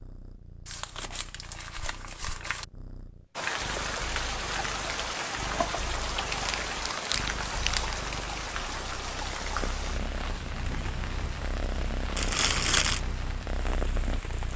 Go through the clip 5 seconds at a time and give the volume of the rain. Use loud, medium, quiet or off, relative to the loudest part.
loud, loud, medium.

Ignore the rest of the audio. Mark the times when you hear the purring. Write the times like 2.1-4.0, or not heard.
0.0-14.5.